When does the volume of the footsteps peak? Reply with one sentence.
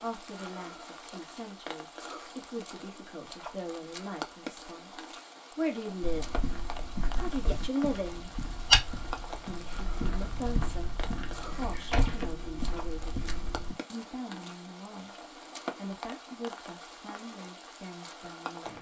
The loudest moment of the footsteps is at 9 seconds.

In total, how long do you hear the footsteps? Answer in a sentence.
You can hear the footsteps for 8 seconds altogether.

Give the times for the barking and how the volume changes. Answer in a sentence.
You can't hear the barking here.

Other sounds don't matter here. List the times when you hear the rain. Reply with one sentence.
You can hear the rain from 0.0 to 18.7 s.